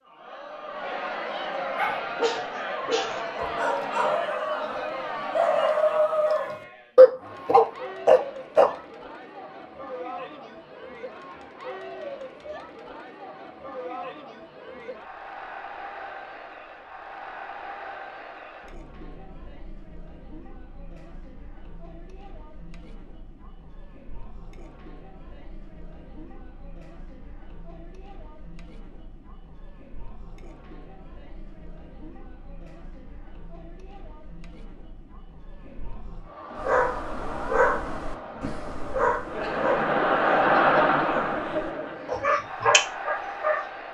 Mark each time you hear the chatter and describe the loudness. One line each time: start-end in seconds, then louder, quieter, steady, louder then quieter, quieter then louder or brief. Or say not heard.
0.0-43.8 quieter then louder.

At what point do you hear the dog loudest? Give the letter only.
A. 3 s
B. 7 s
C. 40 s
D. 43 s
B.